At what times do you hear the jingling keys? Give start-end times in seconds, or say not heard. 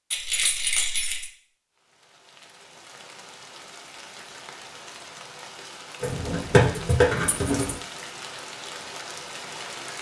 0.1-1.3, 6.0-7.8.